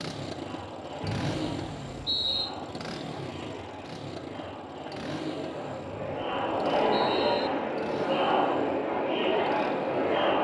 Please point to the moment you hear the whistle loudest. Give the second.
2 s.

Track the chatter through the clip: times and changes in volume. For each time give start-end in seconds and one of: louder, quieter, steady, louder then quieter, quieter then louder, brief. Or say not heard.
0.1-10.3 louder.